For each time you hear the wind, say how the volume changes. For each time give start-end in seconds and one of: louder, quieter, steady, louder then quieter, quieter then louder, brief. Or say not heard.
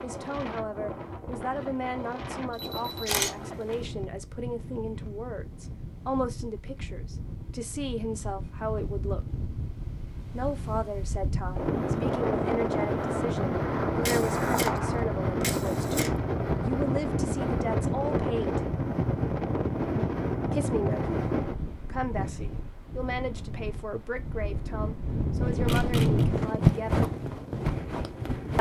0.0-28.5 louder.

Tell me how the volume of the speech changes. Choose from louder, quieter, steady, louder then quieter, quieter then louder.
steady.